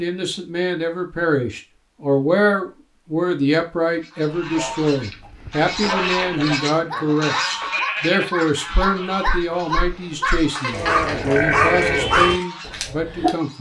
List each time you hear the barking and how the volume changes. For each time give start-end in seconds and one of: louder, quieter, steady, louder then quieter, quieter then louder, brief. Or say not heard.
4.4-13.3 louder.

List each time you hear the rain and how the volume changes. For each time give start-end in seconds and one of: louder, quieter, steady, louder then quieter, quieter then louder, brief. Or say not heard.
not heard.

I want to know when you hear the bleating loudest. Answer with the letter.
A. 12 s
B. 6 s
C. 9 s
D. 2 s
A.